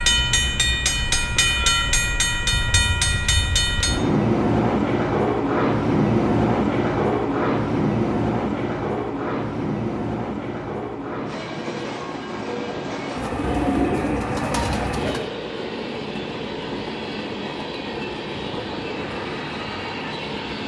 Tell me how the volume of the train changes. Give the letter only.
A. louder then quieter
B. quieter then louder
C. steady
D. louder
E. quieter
E.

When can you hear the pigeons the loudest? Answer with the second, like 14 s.
14 s.